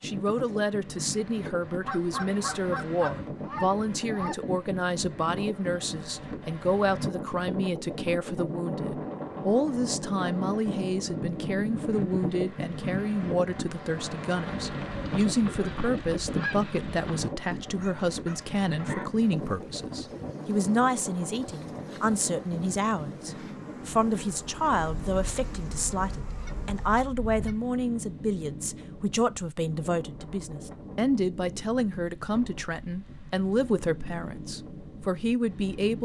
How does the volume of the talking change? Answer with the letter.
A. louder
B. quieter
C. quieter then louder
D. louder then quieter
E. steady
E.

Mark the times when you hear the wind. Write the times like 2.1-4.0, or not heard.
0.0-36.0.